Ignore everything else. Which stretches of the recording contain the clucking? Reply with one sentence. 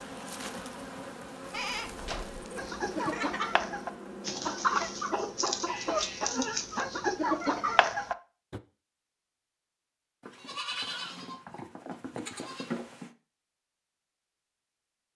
You can hear the clucking from 2.5 to 8.6 s.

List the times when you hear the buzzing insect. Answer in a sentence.
The buzzing insect can be heard from 0.0 to 8.0 s.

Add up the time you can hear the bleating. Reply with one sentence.
The bleating can be heard for 6 seconds in total.